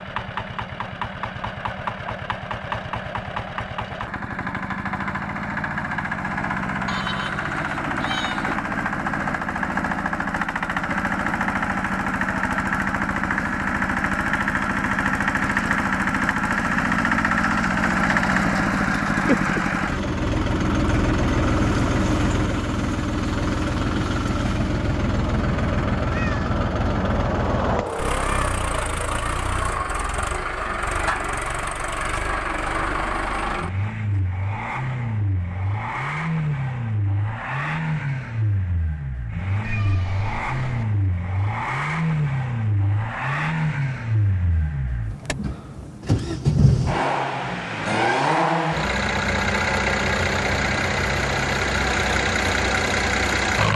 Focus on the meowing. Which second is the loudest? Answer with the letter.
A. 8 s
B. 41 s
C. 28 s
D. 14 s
C.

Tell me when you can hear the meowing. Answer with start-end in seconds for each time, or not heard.
6.8-8.6, 26.1-28.6, 39.6-40.9.